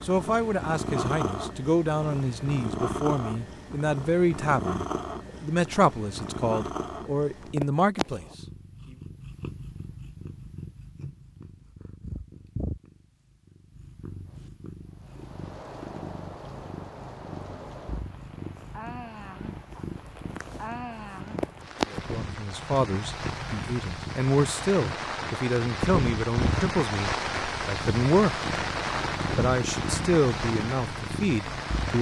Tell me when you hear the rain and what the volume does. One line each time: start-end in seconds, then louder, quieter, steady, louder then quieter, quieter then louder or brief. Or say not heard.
14.2-31.9 louder.